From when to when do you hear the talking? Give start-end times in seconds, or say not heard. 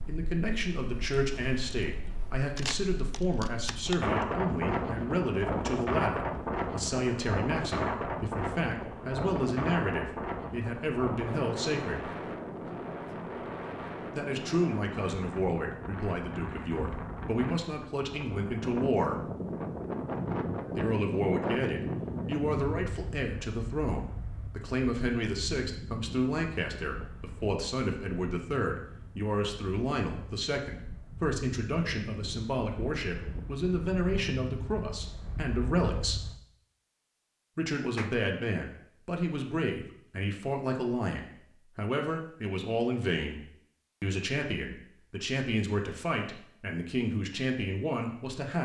0.1-12.1, 14.1-19.2, 20.8-36.3, 37.5-43.4, 44.0-48.6.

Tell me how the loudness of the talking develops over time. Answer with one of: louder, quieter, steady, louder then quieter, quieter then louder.
steady.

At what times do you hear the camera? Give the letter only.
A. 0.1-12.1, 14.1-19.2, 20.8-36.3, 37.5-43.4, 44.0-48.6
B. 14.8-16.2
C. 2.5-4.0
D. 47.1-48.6
C.